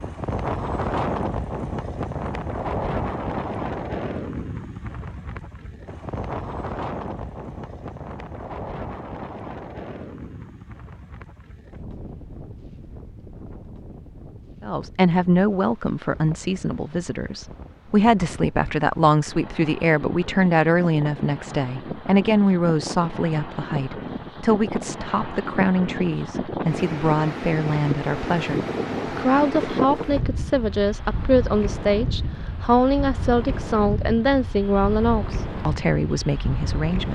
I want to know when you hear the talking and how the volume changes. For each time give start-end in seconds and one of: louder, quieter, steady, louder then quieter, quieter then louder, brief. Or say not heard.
14.6-37.1 steady.